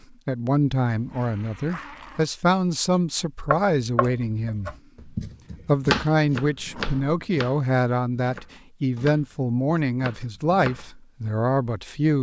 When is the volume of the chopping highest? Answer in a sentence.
The loudest moment of the chopping is at 6 seconds.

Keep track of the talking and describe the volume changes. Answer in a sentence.
The loudness of the talking stays about the same.